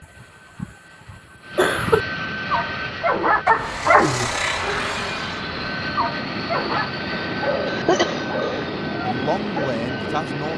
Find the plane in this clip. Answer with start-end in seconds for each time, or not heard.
0.0-10.5.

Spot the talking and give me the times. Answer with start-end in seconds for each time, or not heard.
9.0-10.5.